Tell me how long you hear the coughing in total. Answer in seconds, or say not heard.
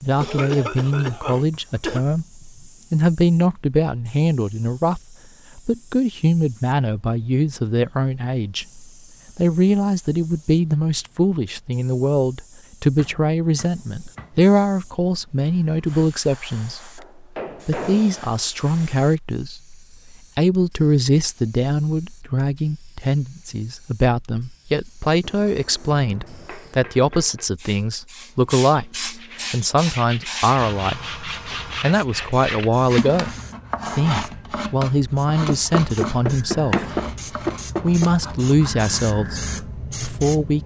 2 s.